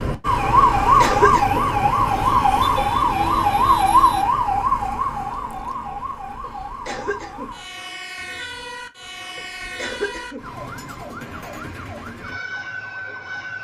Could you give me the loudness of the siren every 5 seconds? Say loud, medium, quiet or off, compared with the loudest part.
loud, quiet, quiet.